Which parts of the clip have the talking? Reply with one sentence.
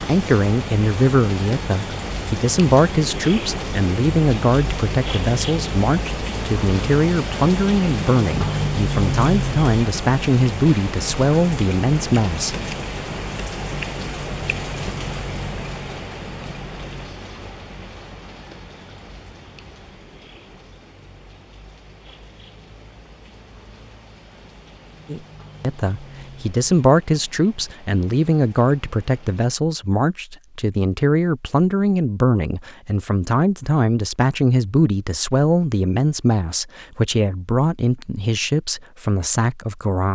The talking can be heard from 0.1 to 12.7 s and from 25.1 to 40.0 s.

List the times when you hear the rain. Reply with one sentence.
You can hear the rain from 0.0 to 29.4 s.